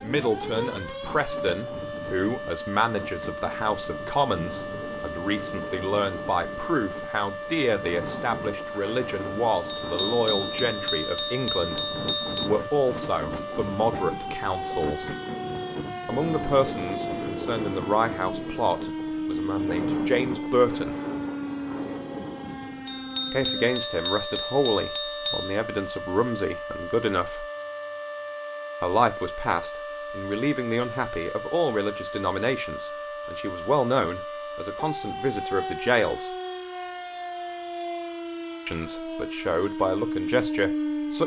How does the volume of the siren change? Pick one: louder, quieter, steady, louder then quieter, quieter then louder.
steady.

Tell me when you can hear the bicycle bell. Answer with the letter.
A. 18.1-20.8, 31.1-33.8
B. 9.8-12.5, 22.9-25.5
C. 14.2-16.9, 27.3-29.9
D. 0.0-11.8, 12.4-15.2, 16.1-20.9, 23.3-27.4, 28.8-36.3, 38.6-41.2
B.